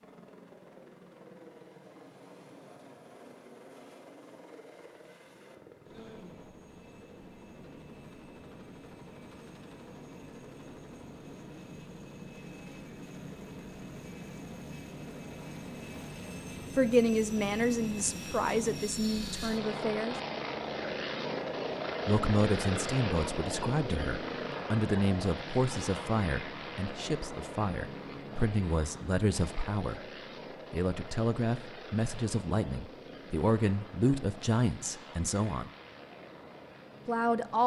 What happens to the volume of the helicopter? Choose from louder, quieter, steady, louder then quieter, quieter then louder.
louder then quieter.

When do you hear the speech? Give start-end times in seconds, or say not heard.
16.8-20.1, 22.1-30.1, 30.7-35.7, 37.0-37.6.